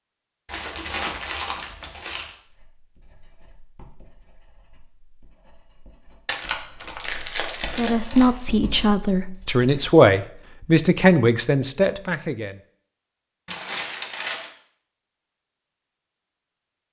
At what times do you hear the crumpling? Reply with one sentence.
You can hear the crumpling from 0.5 to 2.4 s, from 6.2 to 8.3 s and from 13.4 to 14.5 s.